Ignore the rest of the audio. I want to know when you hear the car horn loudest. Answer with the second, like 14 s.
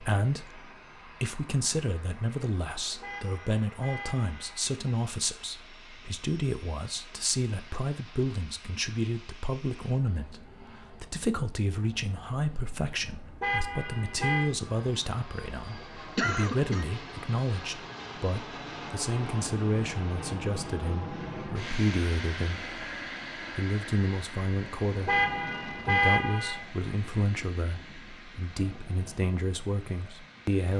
26 s.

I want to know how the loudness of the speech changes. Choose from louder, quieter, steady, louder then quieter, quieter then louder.
steady.